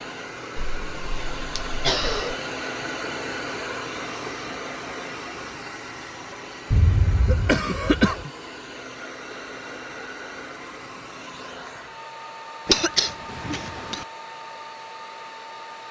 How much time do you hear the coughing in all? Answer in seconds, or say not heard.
5 s.